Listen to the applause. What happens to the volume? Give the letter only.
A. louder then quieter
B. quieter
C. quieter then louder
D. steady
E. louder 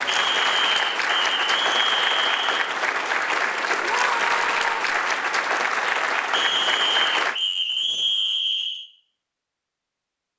D.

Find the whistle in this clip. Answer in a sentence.
You can hear the whistle from 0.1 to 2.7 s and from 6.3 to 8.8 s.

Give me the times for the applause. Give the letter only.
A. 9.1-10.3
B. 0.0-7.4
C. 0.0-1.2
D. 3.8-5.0
B.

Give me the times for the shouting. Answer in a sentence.
You can hear the shouting from 3.8 to 5.0 s.